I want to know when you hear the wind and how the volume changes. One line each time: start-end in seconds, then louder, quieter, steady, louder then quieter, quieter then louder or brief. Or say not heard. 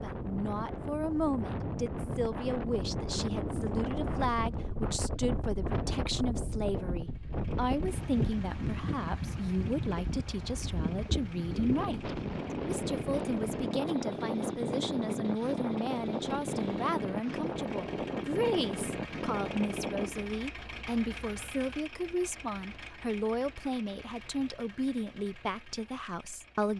0.0-20.3 steady.